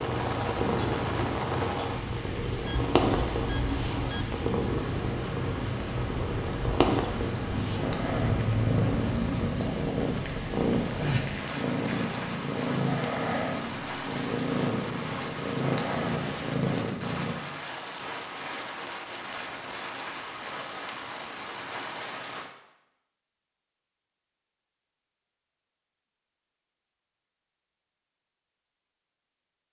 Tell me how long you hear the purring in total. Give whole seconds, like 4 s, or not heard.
17 s.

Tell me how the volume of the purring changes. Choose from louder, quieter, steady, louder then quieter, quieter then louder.
steady.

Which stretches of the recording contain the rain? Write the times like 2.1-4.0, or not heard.
0.0-22.5.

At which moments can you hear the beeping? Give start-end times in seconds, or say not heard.
2.6-4.2.